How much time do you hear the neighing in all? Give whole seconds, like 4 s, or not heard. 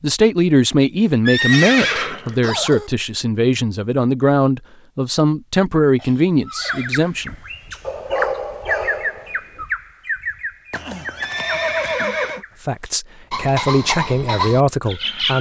4 s.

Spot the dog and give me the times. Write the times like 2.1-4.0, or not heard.
7.8-9.6.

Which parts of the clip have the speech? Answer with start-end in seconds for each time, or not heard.
0.0-7.3, 12.6-15.3.